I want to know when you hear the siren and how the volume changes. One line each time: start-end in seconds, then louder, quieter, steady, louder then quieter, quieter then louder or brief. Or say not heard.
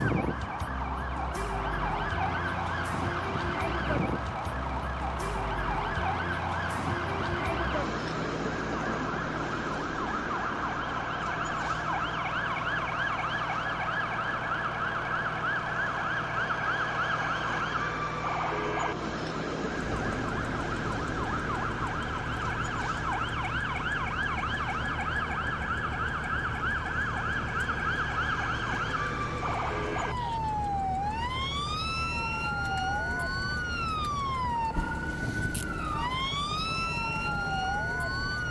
0.0-38.4 steady.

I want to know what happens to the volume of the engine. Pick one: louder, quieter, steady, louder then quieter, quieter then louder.
steady.